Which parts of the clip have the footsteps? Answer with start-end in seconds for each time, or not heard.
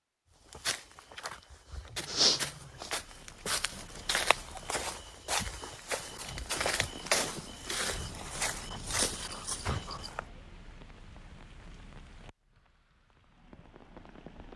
0.5-10.2.